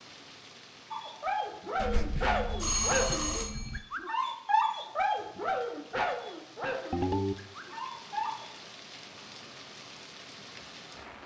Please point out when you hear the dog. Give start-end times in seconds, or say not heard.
0.9-8.6.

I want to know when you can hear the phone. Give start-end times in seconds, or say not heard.
1.8-3.8, 6.9-7.3.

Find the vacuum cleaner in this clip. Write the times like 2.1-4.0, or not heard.
not heard.